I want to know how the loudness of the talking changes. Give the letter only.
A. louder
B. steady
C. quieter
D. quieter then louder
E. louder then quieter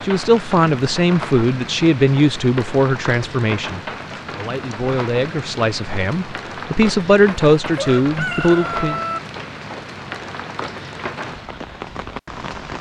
D.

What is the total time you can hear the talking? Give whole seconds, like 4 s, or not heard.
9 s.